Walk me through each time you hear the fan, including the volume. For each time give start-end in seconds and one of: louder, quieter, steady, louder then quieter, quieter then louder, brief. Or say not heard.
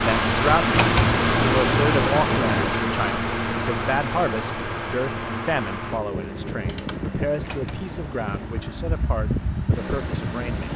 0.0-10.7 quieter.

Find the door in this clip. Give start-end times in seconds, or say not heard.
0.7-2.8, 7.4-8.6.